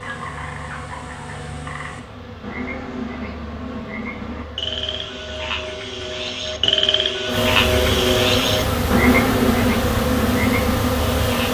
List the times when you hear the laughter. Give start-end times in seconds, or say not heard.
not heard.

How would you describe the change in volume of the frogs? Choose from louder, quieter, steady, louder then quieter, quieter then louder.
louder.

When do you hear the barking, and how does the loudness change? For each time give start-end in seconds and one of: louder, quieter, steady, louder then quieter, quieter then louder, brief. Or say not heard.
not heard.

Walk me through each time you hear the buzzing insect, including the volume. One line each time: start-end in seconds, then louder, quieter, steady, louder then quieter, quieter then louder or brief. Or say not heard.
0.0-11.4 louder.